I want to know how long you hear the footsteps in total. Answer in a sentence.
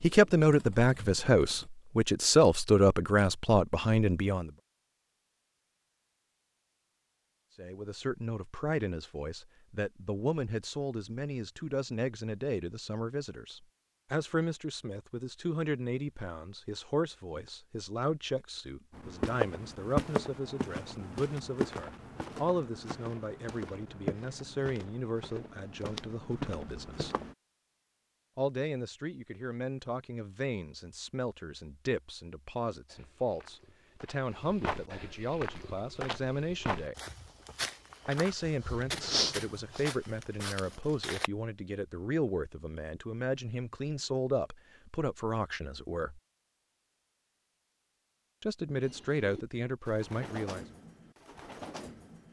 You can hear the footsteps for 17 seconds altogether.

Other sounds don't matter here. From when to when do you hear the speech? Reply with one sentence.
You can hear the speech from 0.0 to 4.5 s, from 7.5 to 27.1 s, from 28.4 to 37.0 s, from 38.0 to 46.2 s and from 48.4 to 50.6 s.